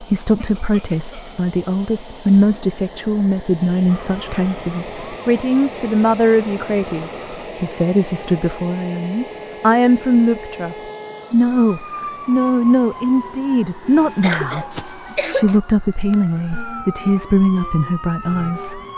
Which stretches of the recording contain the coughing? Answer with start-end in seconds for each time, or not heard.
0.3-1.4, 14.2-15.6.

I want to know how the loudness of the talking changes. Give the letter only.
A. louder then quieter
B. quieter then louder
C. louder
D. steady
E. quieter
D.